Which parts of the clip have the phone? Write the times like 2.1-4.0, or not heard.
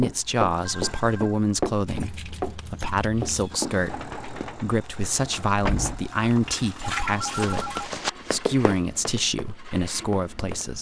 0.6-1.4, 6.8-7.9.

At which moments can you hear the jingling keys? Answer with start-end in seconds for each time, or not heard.
1.9-3.6, 5.6-8.0.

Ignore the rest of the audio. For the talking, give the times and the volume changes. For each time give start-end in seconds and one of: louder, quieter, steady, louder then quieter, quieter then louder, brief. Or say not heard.
0.0-10.7 steady.